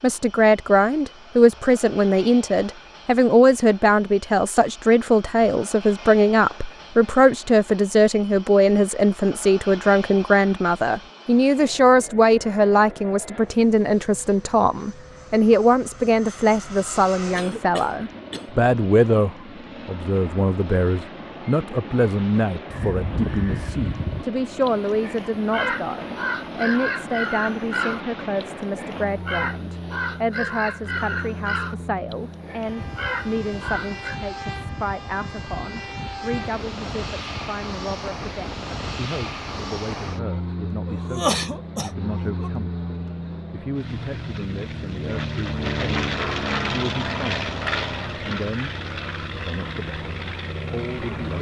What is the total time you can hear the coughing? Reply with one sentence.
You can hear the coughing for 3 seconds altogether.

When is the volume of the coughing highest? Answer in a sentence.
The loudest moment of the coughing is at 41 seconds.